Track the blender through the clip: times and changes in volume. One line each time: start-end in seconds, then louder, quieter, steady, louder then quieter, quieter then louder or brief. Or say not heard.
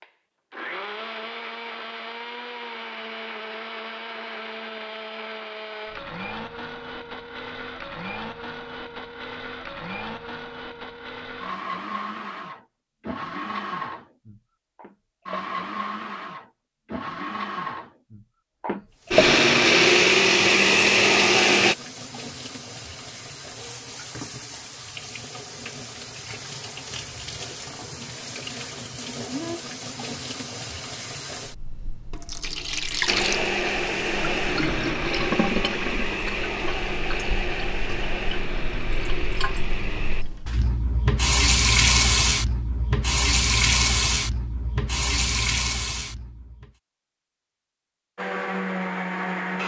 0.0-21.8 louder
33.0-40.2 quieter
48.1-49.6 brief.